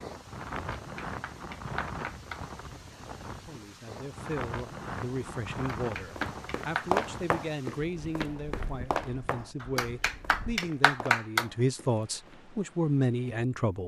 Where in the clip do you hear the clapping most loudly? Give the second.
11 s.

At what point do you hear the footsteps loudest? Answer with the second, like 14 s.
7 s.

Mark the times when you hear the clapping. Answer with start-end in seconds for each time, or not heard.
0.6-2.5, 5.8-7.0, 9.6-11.4.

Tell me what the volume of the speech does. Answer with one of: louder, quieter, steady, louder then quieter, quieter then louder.
louder.